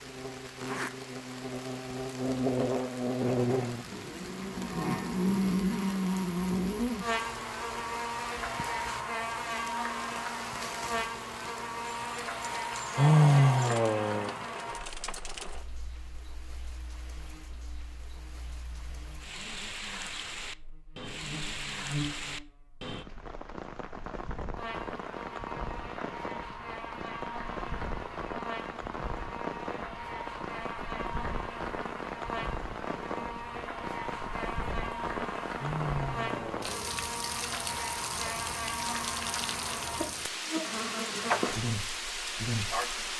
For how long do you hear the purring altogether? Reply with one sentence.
The purring can't be heard in this clip.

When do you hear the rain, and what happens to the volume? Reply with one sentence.
The rain can be heard from 0.0 to 43.1 s, getting louder.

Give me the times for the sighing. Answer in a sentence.
You can hear the sighing from 12.9 to 14.3 s and from 35.5 to 36.9 s.